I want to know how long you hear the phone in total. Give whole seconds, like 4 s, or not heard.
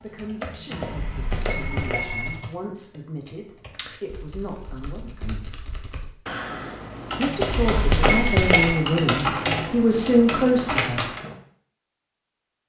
3 s.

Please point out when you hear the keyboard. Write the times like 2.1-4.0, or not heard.
0.0-11.3.